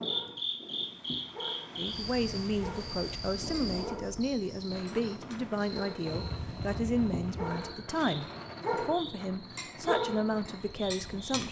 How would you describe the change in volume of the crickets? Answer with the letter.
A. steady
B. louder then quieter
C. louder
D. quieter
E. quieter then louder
D.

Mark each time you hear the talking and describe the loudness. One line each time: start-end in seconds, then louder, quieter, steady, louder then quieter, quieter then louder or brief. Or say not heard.
1.8-11.4 steady.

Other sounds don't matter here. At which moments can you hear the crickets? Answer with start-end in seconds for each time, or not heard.
0.0-11.3.